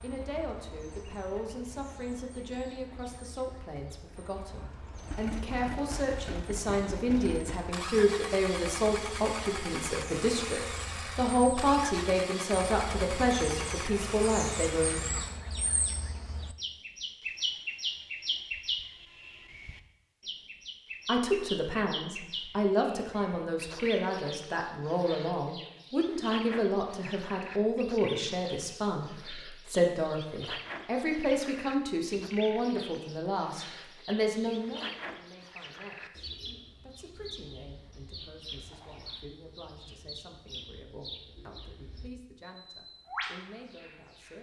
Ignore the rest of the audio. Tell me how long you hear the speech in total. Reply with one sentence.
The speech can be heard for 38 seconds in total.